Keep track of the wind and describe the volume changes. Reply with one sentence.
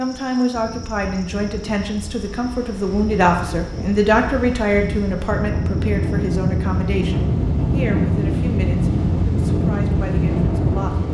The loudness of the wind goes up.